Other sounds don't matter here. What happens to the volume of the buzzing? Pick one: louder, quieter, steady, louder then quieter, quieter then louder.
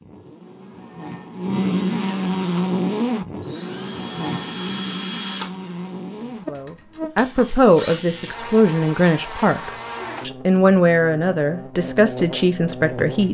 quieter.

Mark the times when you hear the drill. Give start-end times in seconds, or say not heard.
2.4-8.0.